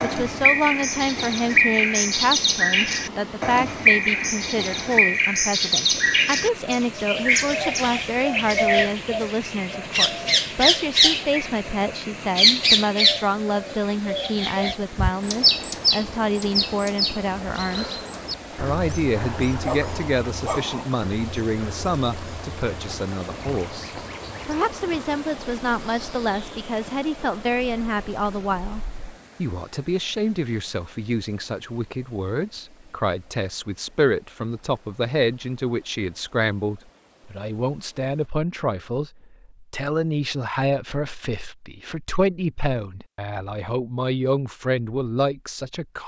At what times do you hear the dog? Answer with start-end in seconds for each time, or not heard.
19.1-20.9.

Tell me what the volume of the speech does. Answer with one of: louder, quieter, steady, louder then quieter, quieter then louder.
steady.